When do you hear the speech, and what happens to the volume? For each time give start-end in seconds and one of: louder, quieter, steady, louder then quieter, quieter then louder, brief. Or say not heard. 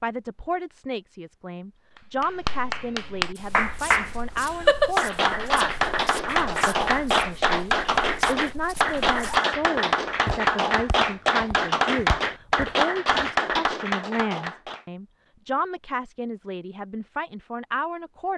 0.0-18.3 steady.